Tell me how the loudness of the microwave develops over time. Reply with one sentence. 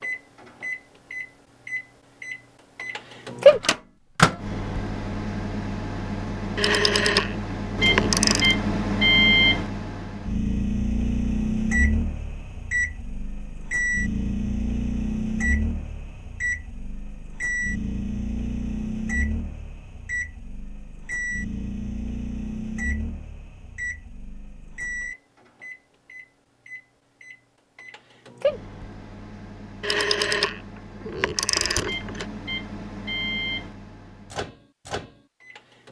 The loudness of the microwave goes down.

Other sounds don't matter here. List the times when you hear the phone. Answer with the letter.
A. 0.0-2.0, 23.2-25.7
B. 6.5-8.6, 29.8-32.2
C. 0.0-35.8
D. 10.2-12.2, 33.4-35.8
B.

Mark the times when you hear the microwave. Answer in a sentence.
The microwave can be heard from 0.0 to 35.8 s.